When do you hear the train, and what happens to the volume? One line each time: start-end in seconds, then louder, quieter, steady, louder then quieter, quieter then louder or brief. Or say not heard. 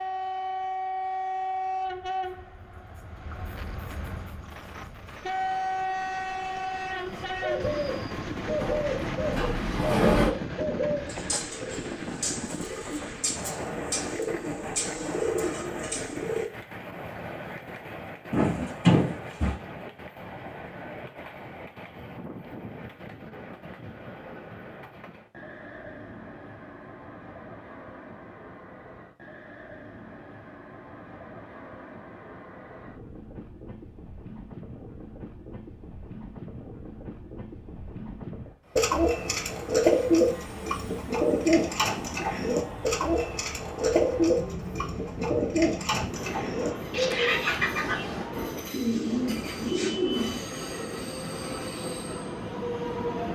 0.0-53.2 quieter then louder.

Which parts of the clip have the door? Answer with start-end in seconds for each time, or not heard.
8.6-10.3, 18.3-19.6, 47.0-48.3.